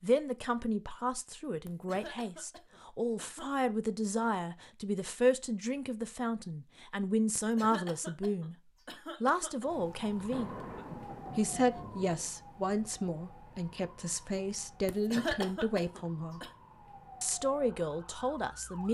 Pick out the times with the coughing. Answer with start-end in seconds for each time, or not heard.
1.6-3.5, 7.3-9.7, 14.8-16.5.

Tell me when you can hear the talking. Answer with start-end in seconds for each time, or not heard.
0.0-8.6, 9.2-10.6, 11.3-16.5, 17.2-18.8.